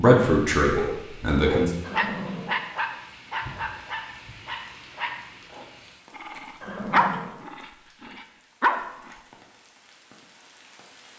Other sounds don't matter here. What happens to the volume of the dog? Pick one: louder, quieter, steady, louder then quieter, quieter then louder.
quieter then louder.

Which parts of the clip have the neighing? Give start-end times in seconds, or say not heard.
1.8-2.6, 6.6-7.3.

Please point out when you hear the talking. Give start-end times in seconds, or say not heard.
0.0-1.7.